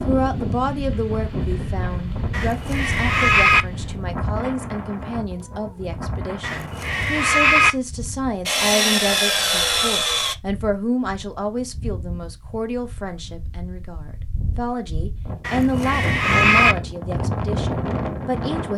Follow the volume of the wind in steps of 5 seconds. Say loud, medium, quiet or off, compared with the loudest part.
loud, medium, quiet, loud.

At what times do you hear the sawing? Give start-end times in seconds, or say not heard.
8.4-10.3.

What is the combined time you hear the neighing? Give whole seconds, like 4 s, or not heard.
4 s.